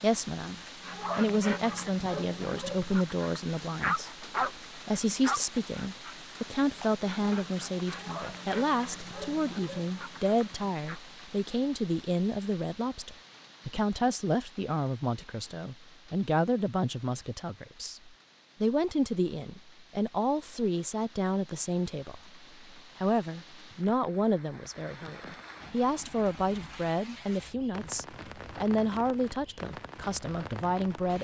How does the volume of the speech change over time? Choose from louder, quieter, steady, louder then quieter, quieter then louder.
steady.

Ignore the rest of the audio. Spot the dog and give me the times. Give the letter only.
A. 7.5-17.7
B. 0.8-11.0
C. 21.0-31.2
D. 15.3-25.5
B.